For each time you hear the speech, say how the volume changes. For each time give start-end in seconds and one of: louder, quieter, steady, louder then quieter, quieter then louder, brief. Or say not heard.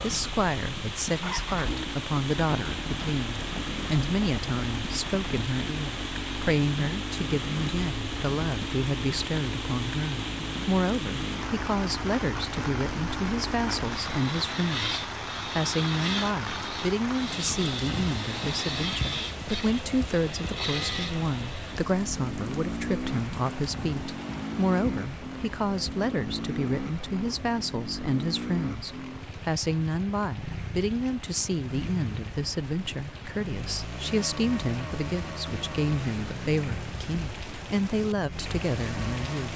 0.0-39.5 steady.